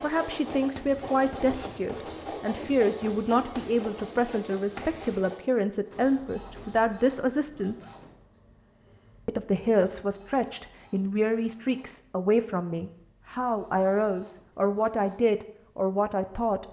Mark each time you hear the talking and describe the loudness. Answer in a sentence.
You can hear the talking from 0.0 to 8.0 s, at a steady volume; and from 9.2 to 16.6 s, at a steady volume.